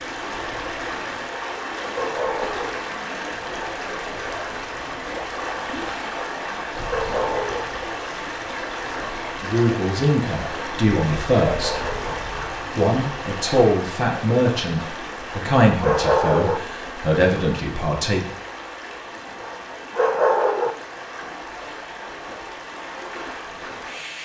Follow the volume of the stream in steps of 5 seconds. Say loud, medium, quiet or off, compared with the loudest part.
loud, loud, loud, medium, medium.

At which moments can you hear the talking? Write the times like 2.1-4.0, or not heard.
9.4-11.8, 12.7-18.3.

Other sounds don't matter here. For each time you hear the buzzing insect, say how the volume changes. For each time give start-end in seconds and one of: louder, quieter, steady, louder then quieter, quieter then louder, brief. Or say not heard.
not heard.